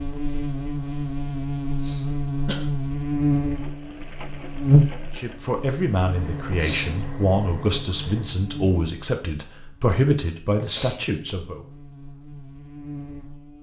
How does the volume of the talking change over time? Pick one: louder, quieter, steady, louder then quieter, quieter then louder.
steady.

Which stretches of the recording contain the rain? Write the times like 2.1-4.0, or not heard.
not heard.